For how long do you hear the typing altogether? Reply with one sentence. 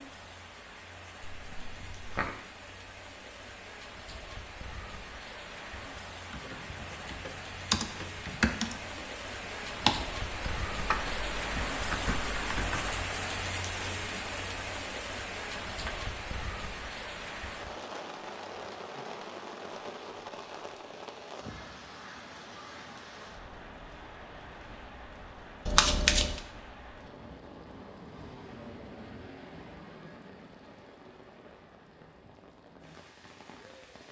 You can hear the typing for 7 seconds altogether.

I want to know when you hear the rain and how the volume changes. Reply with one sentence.
The rain can be heard from 0.0 to 34.0 s, getting louder then quieter.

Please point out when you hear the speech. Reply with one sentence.
You can't hear the speech here.